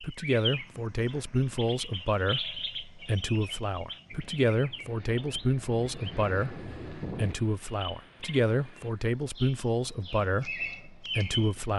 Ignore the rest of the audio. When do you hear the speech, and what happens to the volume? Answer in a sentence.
The speech can be heard from 0.0 to 11.7 s, at a steady volume.